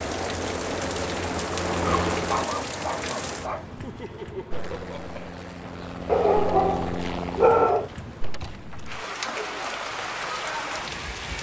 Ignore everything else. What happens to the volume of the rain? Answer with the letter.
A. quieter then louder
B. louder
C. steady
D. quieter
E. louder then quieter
A.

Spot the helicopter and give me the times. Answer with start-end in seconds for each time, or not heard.
0.0-2.5, 4.5-7.7.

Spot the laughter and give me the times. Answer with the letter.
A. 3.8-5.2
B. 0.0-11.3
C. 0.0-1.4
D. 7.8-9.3
A.